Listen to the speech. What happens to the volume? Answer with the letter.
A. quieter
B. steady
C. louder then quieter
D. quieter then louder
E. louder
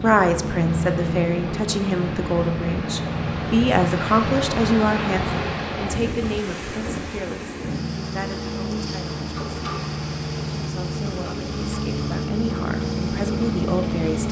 D.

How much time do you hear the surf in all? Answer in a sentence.
You can hear the surf for 14 seconds altogether.